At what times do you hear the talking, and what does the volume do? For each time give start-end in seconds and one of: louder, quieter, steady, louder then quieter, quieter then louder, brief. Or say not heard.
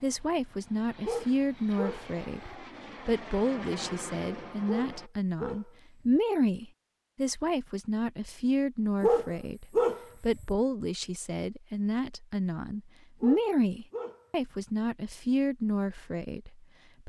0.0-17.0 steady.